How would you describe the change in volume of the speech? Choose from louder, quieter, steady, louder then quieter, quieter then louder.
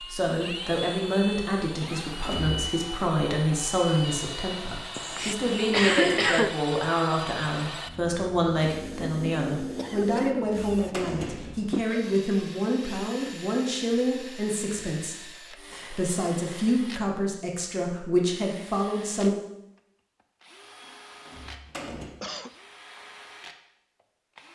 steady.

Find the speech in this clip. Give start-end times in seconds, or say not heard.
0.0-19.4.